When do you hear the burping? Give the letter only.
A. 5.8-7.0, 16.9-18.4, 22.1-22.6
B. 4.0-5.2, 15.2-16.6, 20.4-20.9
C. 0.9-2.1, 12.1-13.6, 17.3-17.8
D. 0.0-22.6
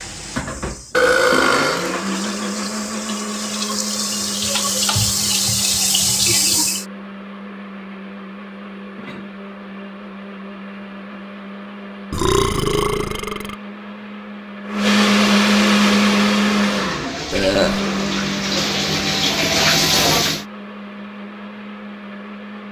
C.